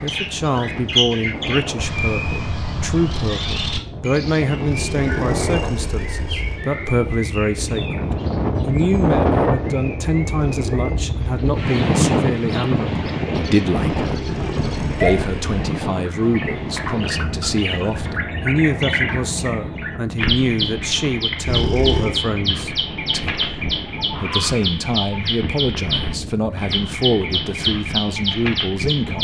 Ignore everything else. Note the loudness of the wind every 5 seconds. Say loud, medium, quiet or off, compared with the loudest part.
medium, loud, loud, medium, medium, medium.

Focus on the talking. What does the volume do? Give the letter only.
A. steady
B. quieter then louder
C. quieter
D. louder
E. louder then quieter
A.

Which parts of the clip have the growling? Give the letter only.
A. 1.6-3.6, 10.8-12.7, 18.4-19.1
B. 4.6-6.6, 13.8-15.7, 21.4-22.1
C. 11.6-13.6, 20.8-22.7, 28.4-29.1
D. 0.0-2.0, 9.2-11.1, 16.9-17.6
B.